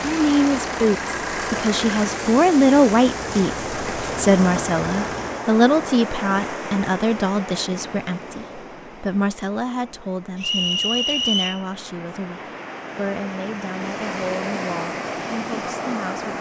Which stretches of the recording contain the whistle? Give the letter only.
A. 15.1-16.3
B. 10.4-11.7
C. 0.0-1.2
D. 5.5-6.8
B.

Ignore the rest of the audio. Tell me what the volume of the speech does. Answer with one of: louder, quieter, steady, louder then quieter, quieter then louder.
quieter.